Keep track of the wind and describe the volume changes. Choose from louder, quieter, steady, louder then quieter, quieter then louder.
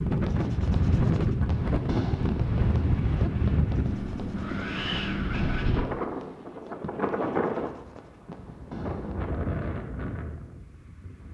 quieter.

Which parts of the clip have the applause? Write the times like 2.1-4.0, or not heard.
not heard.